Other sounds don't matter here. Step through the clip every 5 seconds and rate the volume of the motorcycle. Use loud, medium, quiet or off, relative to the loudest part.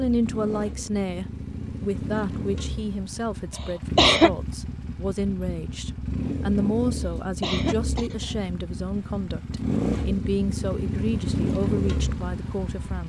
medium, loud, loud.